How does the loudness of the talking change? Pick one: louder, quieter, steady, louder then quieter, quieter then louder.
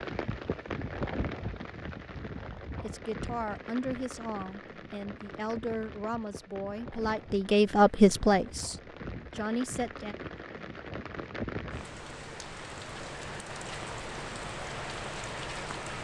louder then quieter.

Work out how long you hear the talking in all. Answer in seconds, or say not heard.
7 s.